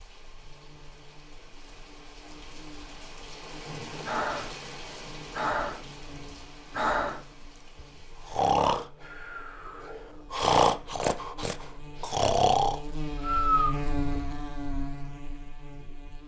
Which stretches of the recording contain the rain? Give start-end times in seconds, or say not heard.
0.0-8.4.